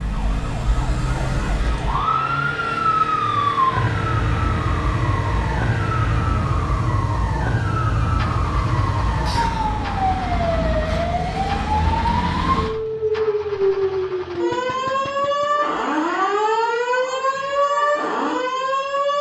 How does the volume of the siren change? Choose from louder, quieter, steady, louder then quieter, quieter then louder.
steady.